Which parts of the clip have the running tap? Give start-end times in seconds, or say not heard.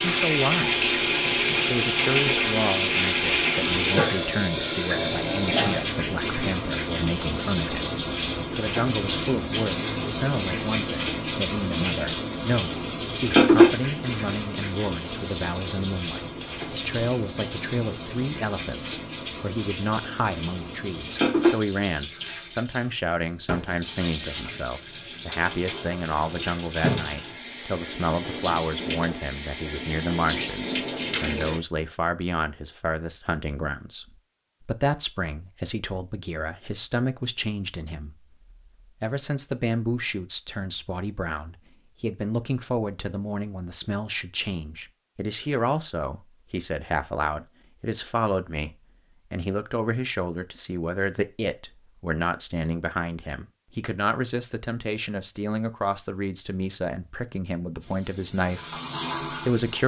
0.0-31.6, 57.8-59.8.